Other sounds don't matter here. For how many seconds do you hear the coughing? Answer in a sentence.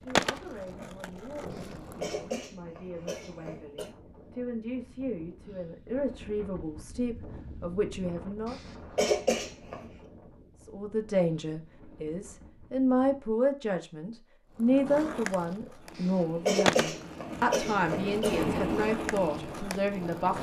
You can hear the coughing for 6 seconds altogether.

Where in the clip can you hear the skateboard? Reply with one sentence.
The skateboard can be heard from 0.1 to 2.3 s and from 14.6 to 20.3 s.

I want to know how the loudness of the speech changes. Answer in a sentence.
The loudness of the speech goes up.